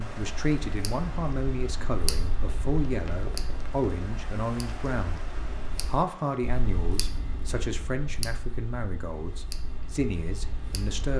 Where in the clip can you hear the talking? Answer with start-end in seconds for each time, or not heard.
0.0-5.2, 5.8-11.1.